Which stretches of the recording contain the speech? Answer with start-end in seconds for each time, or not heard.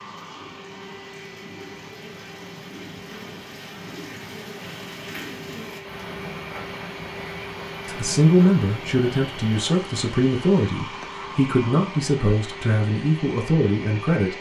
7.8-14.3.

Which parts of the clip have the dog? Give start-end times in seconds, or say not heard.
not heard.